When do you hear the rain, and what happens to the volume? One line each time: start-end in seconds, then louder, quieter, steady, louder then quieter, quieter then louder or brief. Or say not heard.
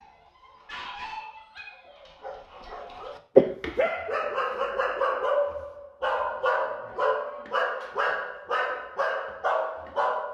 not heard.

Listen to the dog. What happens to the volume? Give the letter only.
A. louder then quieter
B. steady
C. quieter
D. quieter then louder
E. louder
E.